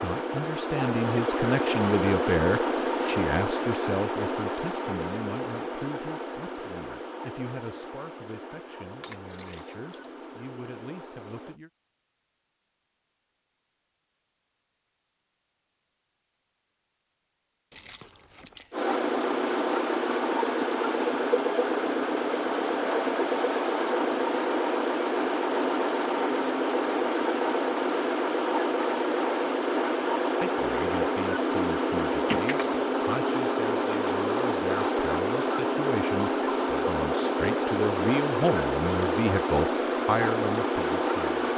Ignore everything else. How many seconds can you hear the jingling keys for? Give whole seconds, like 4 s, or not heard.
3 s.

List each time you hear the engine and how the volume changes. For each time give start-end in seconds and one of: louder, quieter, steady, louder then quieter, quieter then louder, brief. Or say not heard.
0.0-11.6 quieter
18.7-41.5 steady.